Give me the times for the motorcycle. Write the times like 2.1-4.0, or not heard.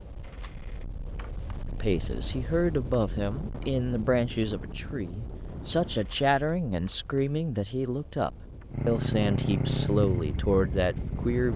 8.7-11.4.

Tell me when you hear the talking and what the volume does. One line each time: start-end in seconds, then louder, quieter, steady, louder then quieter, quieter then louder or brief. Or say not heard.
1.7-11.5 steady.